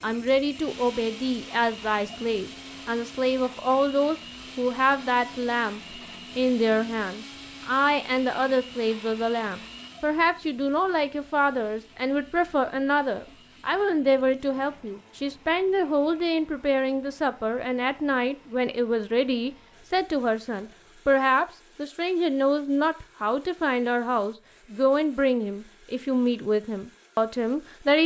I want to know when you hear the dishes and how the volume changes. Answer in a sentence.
The dishes can't be heard in this clip.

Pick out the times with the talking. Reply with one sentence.
The talking can be heard from 0.0 to 28.0 s.